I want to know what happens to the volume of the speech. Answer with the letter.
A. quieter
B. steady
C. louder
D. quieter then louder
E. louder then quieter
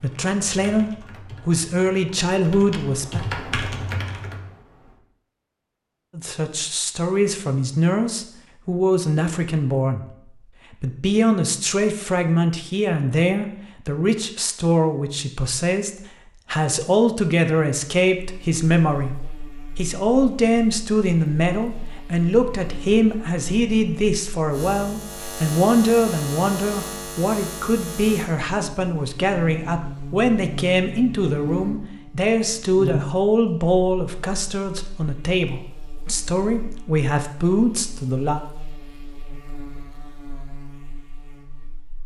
B.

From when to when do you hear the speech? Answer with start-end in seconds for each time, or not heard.
0.0-3.2, 6.2-10.1, 10.7-38.4.